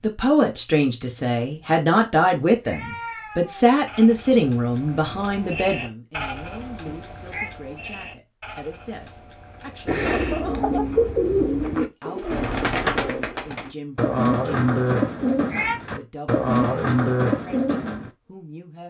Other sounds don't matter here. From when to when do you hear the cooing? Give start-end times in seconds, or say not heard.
9.8-18.1.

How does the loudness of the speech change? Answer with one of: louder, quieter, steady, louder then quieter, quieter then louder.
quieter.